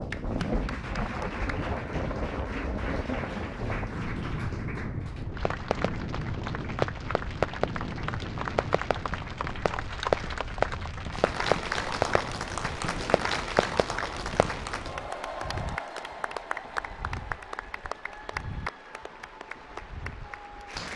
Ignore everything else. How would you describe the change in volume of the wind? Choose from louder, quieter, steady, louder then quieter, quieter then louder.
quieter.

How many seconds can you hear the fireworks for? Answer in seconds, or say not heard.
9 s.